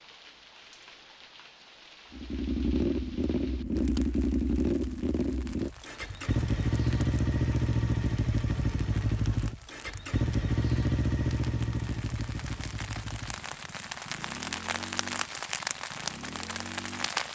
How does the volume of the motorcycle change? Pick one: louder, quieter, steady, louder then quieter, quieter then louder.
quieter.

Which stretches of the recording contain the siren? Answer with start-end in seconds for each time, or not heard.
not heard.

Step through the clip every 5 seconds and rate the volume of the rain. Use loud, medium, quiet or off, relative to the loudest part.
quiet, quiet, medium, loud.